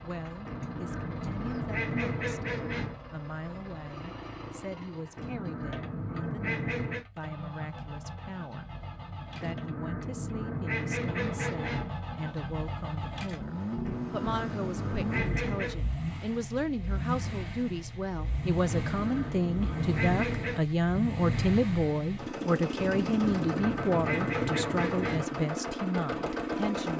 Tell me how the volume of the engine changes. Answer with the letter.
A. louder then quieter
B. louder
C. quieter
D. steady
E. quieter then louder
B.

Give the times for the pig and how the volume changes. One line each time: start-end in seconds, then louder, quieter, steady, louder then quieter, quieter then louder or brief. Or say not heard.
not heard.